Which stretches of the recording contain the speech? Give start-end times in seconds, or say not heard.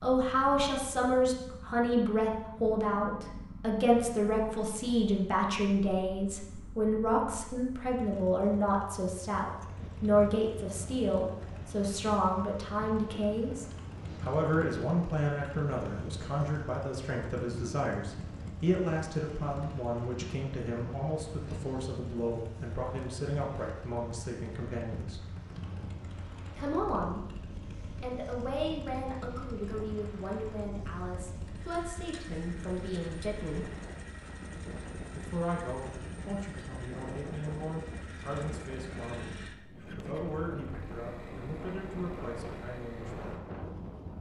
0.0-25.2, 26.6-27.3, 28.0-33.7, 35.1-43.4.